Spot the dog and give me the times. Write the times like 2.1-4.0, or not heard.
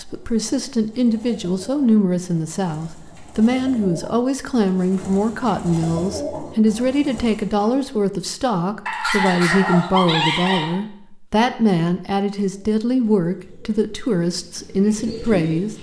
8.8-10.8.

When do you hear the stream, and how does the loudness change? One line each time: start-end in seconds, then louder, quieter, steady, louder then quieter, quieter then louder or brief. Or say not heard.
not heard.